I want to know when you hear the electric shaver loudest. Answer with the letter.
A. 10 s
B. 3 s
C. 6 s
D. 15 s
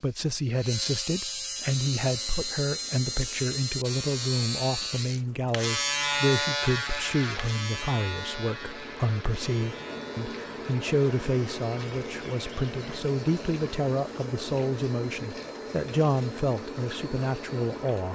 C.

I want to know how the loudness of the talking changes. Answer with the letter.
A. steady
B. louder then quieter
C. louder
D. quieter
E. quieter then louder
A.